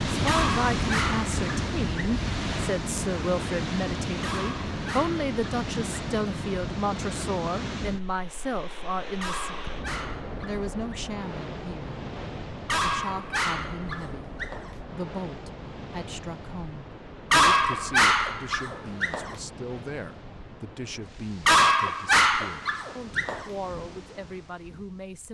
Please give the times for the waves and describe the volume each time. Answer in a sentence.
You can hear the waves from 0.0 to 25.3 s, getting quieter.